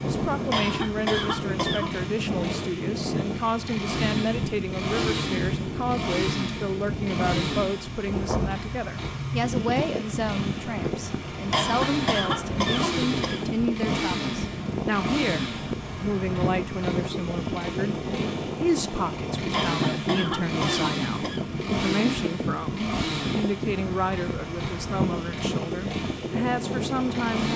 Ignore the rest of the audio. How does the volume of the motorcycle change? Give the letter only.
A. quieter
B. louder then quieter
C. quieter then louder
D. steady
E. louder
D.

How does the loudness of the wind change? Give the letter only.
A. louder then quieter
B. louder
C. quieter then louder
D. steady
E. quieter
D.